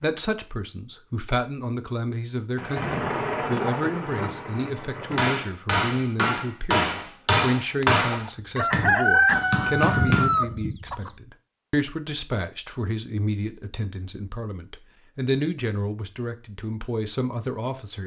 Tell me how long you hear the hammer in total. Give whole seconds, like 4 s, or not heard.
5 s.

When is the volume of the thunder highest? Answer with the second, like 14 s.
3 s.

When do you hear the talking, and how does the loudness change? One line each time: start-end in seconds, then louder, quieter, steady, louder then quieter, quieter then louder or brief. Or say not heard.
0.0-18.0 steady.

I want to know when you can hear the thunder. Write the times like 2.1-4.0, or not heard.
2.5-5.3.